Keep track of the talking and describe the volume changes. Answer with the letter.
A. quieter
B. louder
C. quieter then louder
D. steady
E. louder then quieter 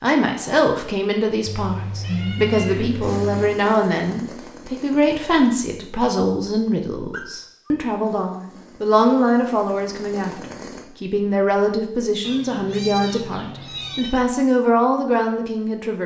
D.